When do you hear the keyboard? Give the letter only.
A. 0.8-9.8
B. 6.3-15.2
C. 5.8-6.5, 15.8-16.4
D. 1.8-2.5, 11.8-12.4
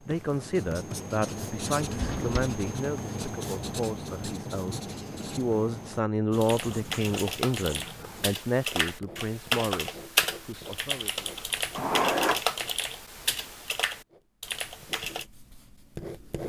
B.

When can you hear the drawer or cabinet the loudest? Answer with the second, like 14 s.
12 s.